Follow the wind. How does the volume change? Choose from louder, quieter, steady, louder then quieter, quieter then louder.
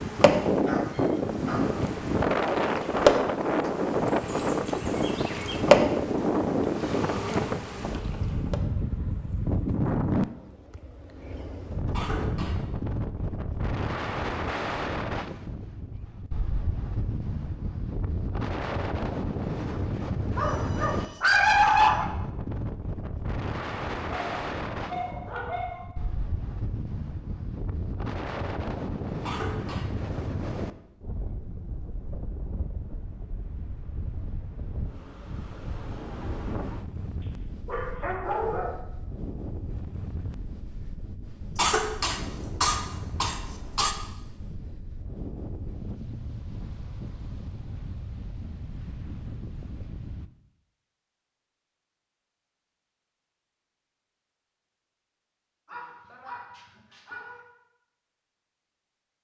quieter.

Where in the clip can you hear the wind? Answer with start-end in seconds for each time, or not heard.
0.0-50.3.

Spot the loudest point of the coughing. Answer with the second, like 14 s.
42 s.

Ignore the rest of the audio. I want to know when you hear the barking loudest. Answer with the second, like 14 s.
22 s.